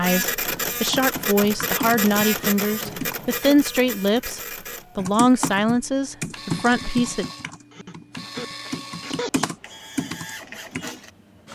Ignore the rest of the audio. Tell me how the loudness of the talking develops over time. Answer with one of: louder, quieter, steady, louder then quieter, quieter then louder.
steady.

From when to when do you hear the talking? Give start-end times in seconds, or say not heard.
0.0-7.2.